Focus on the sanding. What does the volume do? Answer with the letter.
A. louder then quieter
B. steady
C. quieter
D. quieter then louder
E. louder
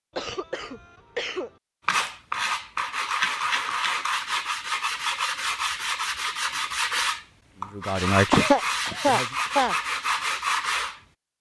B.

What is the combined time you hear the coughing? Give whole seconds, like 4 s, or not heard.
3 s.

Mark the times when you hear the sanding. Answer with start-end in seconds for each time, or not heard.
1.9-11.0.